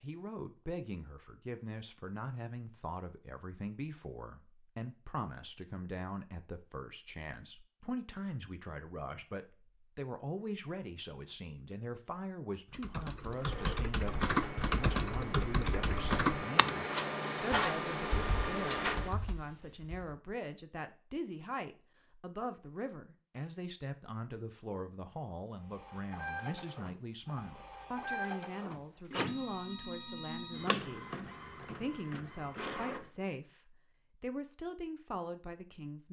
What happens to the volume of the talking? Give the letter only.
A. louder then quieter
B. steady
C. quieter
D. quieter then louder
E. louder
B.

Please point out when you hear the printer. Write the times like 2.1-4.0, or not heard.
13.3-19.1, 25.6-33.1.